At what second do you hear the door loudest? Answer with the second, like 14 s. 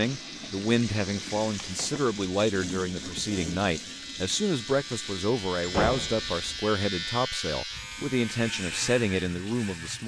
6 s.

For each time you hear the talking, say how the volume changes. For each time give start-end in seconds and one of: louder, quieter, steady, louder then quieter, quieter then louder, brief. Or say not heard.
0.0-10.0 steady.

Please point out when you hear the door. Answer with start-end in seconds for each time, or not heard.
1.1-2.0, 5.6-6.7.